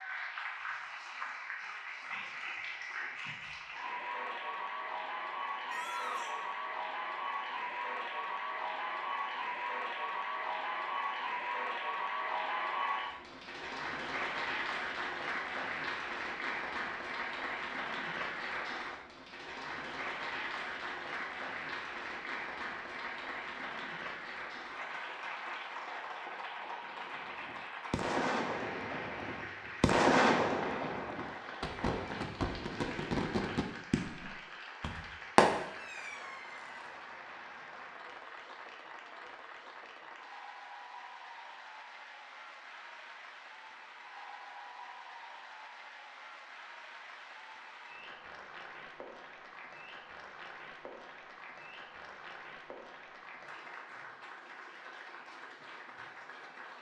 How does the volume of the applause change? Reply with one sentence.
The volume of the applause goes down.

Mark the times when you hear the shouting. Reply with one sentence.
You can hear the shouting from 5.7 to 6.3 s.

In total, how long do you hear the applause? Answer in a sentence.
You can hear the applause for 57 seconds altogether.